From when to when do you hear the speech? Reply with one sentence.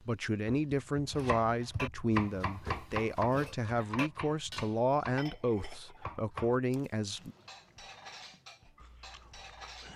The speech can be heard from 0.1 to 7.3 s.